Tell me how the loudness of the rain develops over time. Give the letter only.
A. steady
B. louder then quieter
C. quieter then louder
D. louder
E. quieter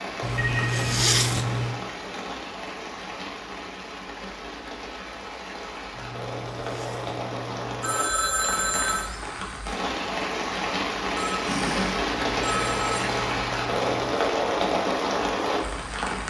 D.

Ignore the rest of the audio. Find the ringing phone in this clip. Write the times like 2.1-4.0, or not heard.
0.3-0.9, 7.8-9.1, 11.2-13.0.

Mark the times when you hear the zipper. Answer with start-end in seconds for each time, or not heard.
0.2-1.8, 6.0-8.0, 12.2-14.2.